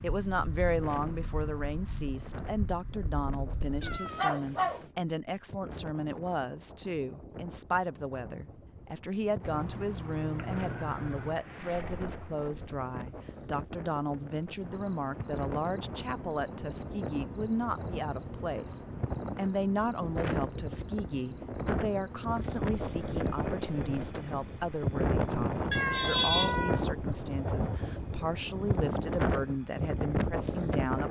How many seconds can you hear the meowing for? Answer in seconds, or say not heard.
2 s.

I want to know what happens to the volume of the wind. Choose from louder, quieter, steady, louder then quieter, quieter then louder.
louder.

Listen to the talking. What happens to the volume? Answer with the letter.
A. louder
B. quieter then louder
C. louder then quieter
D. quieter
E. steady
E.